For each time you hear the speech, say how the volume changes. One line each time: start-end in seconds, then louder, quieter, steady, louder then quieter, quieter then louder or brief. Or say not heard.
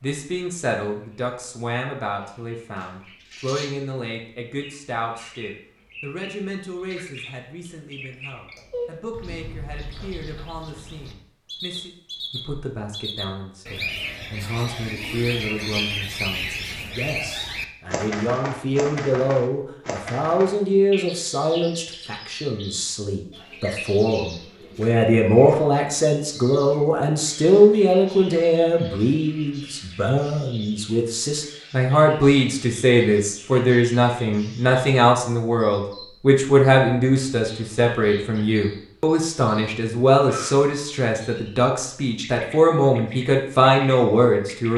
0.0-44.7 louder.